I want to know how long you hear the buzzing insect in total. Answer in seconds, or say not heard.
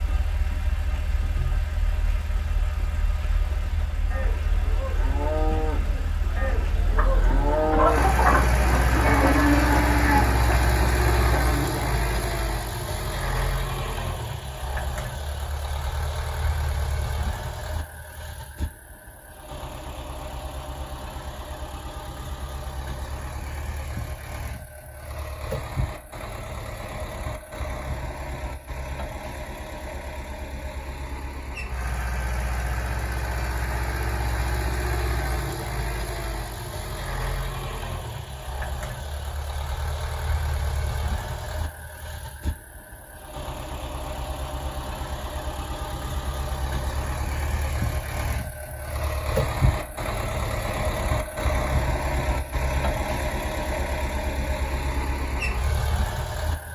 not heard.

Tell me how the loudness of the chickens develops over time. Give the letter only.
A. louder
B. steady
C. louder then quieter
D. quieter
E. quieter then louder
D.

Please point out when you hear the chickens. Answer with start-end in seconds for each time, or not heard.
7.0-12.3.